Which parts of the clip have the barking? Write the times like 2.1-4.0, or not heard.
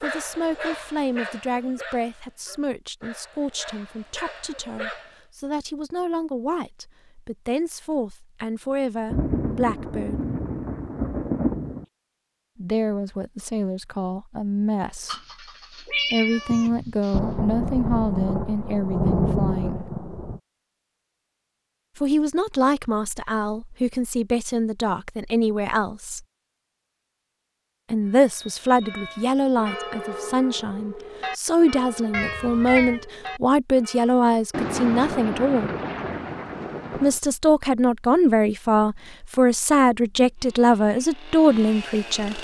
0.0-5.2.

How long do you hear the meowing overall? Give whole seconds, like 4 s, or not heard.
3 s.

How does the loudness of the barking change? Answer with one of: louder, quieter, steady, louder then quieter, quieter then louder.
quieter then louder.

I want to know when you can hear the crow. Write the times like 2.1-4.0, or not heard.
not heard.